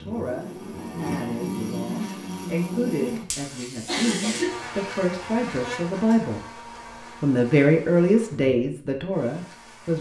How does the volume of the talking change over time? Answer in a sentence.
The loudness of the talking goes up.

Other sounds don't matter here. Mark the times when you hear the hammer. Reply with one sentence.
The hammer can't be heard in this clip.